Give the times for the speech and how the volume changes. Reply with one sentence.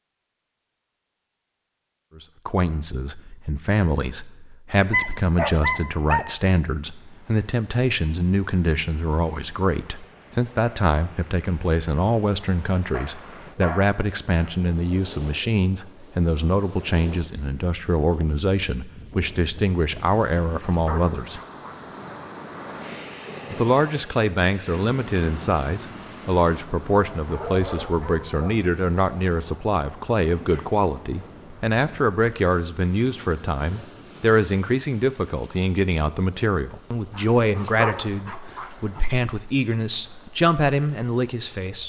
You can hear the speech from 2.1 to 21.4 s, at a steady volume; and from 23.5 to 41.8 s, at a steady volume.